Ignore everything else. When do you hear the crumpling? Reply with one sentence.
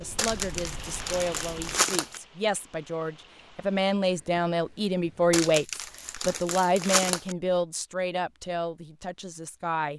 You can hear the crumpling from 0.1 to 2.2 s and from 5.3 to 7.3 s.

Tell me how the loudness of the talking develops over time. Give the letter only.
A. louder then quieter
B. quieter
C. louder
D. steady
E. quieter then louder
A.